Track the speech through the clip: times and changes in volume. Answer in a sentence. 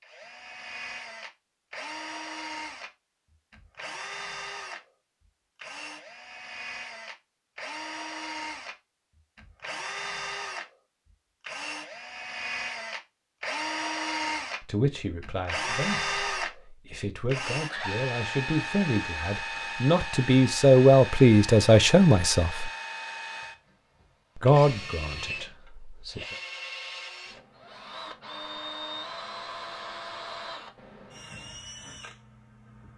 The speech can be heard from 14.6 to 22.7 s, getting louder; and briefly from 24.4 to 26.4 s.